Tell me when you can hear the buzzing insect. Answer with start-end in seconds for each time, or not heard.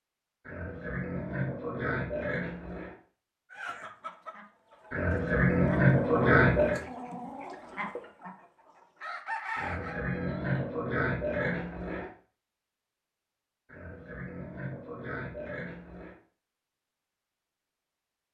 not heard.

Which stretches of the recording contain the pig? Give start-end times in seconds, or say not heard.
0.5-3.0, 4.9-6.8, 9.6-12.1, 13.7-16.1.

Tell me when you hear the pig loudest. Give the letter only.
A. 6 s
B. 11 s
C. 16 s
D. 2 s
A.